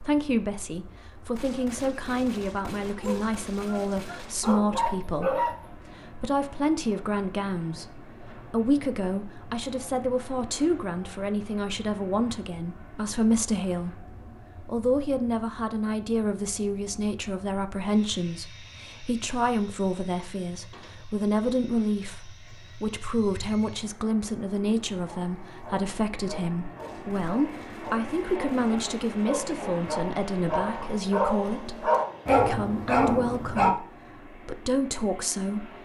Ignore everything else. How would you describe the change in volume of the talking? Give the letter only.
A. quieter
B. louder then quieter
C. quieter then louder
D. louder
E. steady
E.